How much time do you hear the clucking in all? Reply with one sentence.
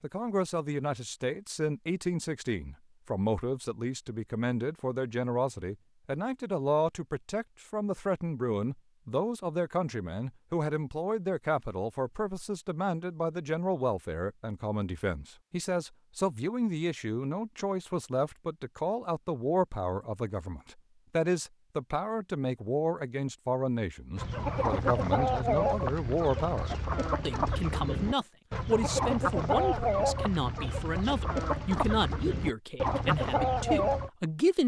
The clucking can be heard for 10 seconds in total.